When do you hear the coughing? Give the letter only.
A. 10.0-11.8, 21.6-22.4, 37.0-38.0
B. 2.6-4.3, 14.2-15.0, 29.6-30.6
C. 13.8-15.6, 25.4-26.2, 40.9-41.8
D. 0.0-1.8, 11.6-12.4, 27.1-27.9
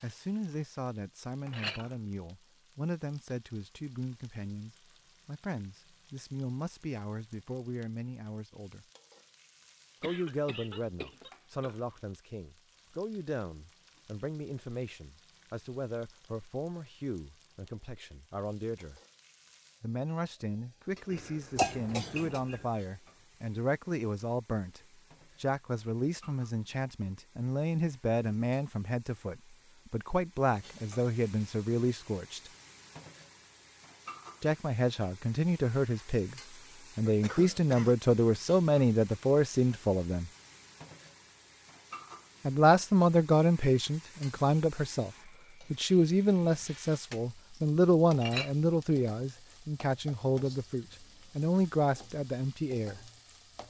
A.